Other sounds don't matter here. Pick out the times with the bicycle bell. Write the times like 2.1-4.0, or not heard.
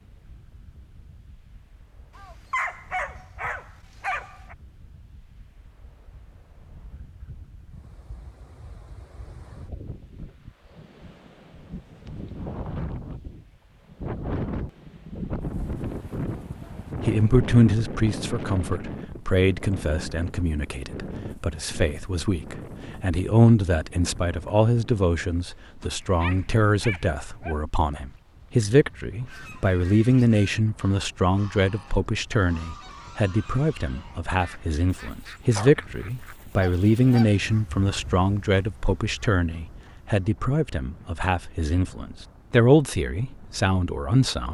not heard.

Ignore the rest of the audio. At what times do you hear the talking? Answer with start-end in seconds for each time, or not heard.
17.0-44.5.